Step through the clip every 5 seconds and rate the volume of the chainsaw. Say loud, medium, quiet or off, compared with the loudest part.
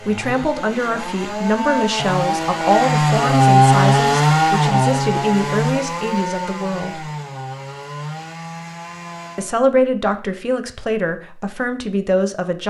loud, medium, off.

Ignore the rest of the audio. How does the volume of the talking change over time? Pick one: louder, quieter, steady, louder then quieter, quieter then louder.
steady.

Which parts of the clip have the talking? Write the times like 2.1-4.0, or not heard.
0.0-7.0, 9.3-12.6.